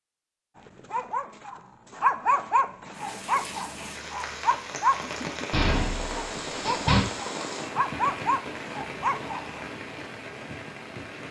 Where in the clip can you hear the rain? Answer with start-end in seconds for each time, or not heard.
2.9-11.2.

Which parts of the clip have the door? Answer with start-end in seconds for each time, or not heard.
5.5-7.0.